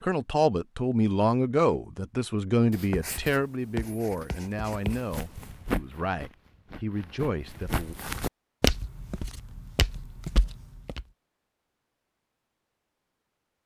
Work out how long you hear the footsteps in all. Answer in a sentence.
The footsteps can be heard for 6 seconds in total.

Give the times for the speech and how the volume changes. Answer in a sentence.
The speech can be heard from 0.0 to 8.0 s, getting quieter.